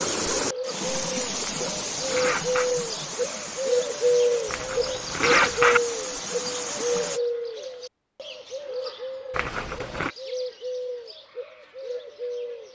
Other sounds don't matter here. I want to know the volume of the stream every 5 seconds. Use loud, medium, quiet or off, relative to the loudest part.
loud, loud, off.